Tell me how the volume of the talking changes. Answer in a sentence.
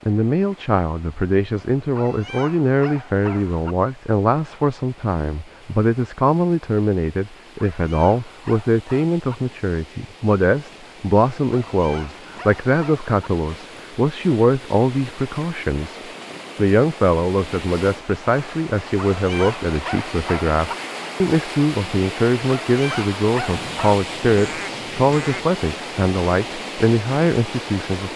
The volume of the talking stays about the same.